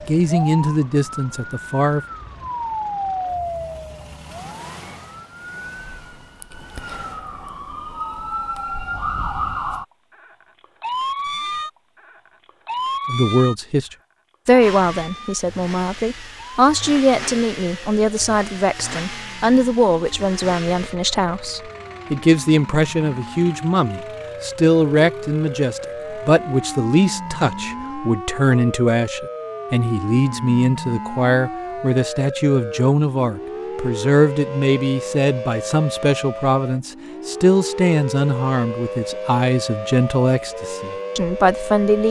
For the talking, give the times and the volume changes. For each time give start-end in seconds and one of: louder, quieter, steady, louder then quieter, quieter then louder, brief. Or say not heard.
0.1-2.0 brief
13.1-42.0 steady.